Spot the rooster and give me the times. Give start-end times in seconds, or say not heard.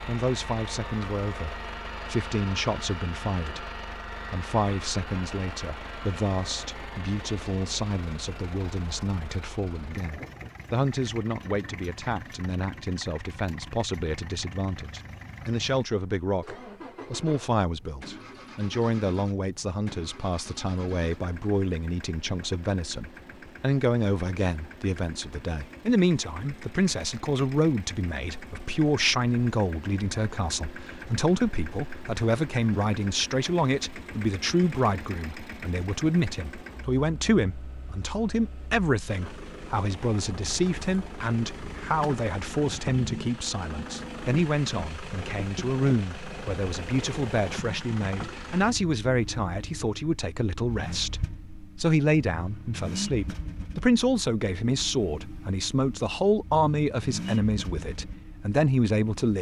not heard.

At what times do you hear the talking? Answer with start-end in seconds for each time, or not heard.
0.1-59.3.